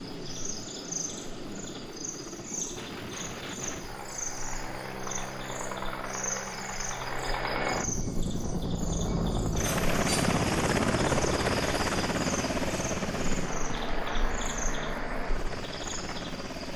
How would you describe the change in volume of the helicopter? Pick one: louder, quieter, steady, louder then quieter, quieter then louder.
louder then quieter.